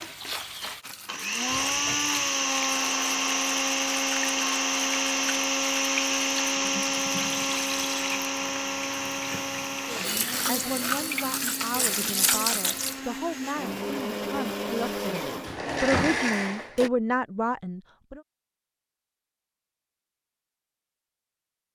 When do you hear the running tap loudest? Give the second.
12 s.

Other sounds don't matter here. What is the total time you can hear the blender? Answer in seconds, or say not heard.
17 s.